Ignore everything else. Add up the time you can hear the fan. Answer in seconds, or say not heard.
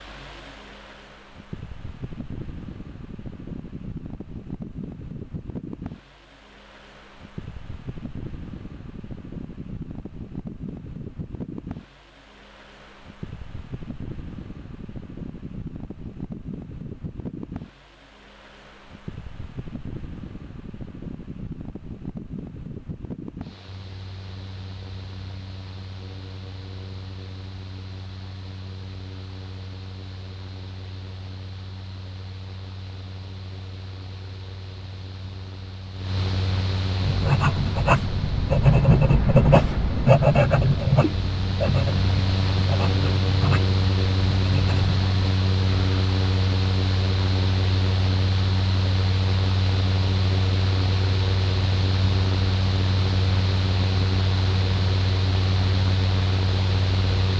57 s.